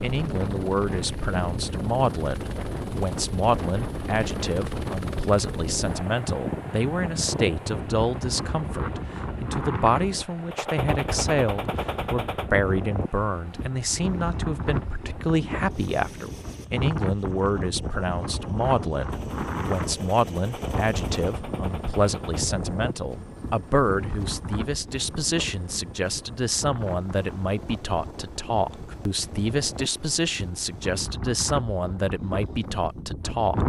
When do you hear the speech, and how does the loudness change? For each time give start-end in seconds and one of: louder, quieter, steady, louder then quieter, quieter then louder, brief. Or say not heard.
0.0-33.6 steady.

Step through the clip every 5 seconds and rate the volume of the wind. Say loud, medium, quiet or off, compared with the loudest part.
loud, loud, loud, loud, loud, medium, loud.